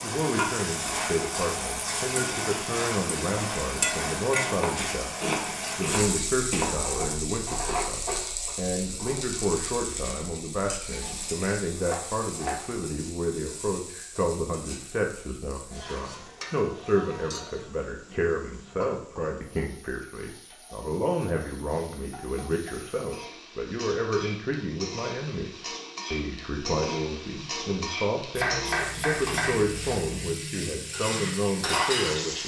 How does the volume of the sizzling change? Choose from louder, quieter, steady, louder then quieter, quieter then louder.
quieter then louder.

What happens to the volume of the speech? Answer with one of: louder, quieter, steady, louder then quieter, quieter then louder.
steady.